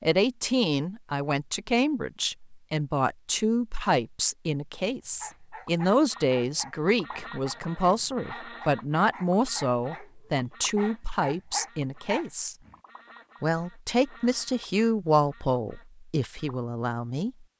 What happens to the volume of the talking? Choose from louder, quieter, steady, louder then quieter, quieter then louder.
steady.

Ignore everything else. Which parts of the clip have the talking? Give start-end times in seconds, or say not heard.
0.0-12.6, 13.4-17.4.